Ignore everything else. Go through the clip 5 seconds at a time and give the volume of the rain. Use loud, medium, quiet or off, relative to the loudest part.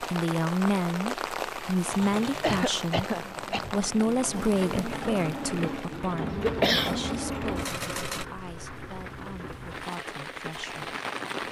loud, medium, loud.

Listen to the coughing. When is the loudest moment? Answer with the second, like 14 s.
7 s.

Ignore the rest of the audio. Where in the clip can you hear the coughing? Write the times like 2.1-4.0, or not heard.
2.4-3.6, 6.2-7.7.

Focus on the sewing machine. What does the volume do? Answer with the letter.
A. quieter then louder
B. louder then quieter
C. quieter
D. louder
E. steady
D.